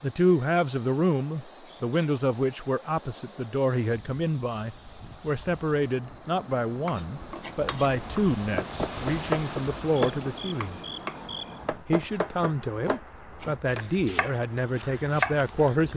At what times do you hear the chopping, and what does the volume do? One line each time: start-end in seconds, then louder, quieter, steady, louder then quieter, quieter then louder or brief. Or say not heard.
6.8-15.5 louder then quieter.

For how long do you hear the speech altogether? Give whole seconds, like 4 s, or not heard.
15 s.